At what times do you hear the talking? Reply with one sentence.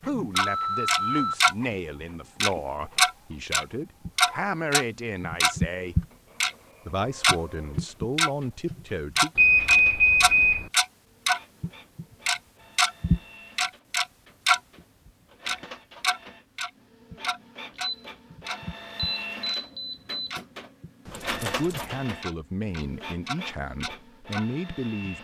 The talking can be heard from 0.0 to 6.0 s, from 6.8 to 9.3 s and from 21.4 to 25.1 s.